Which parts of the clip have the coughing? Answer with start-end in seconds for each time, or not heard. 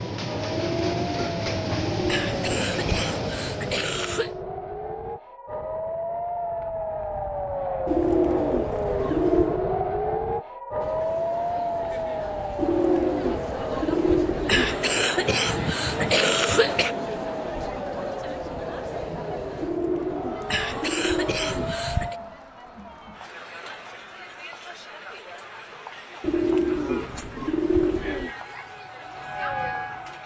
2.0-4.3, 14.4-16.9, 20.4-22.1.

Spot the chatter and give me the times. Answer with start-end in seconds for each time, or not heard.
10.8-30.2.